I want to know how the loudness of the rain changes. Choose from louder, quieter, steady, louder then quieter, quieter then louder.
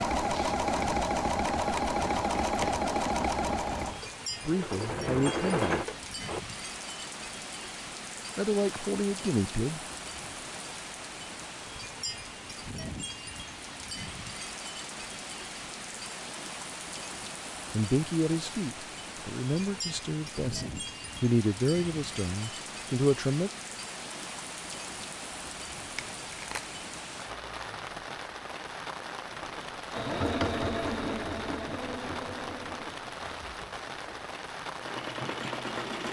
steady.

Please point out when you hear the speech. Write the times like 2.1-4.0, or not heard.
4.5-5.8, 8.3-9.8, 17.7-23.5.